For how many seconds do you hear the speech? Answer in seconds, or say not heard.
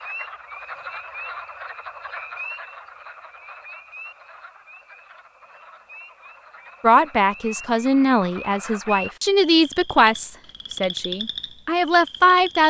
6 s.